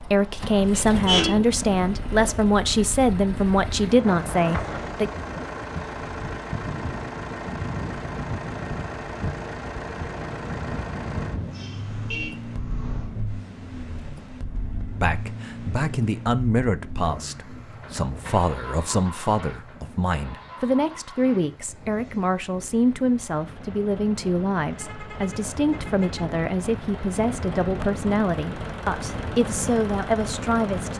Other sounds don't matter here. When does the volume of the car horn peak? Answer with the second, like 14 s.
1 s.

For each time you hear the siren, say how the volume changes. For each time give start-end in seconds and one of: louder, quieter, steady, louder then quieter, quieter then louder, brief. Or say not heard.
not heard.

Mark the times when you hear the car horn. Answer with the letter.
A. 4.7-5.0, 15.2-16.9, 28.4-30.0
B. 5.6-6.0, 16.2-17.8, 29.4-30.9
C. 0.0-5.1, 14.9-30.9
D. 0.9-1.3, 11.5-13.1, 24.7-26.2
D.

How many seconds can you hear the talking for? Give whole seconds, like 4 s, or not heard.
21 s.